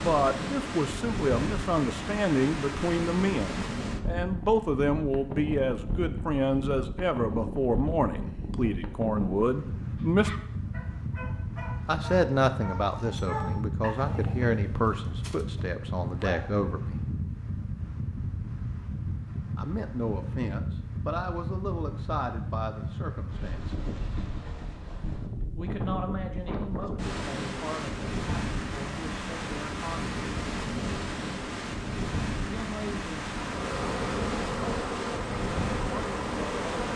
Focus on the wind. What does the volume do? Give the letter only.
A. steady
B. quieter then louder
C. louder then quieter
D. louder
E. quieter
A.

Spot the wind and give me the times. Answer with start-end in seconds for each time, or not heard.
0.0-36.9.